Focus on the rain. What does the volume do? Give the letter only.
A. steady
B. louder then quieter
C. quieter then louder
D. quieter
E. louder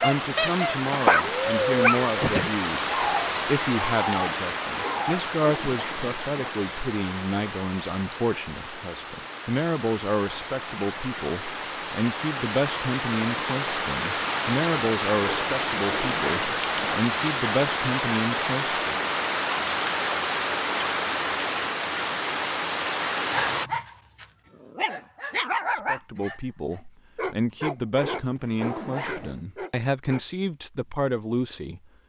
C.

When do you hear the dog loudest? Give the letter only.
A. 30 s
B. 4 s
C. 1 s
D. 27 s
C.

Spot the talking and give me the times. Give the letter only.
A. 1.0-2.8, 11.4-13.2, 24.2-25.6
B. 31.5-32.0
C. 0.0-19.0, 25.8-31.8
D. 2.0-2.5
C.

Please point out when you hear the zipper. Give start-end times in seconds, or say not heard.
4.8-6.5, 15.2-16.9, 27.9-29.4.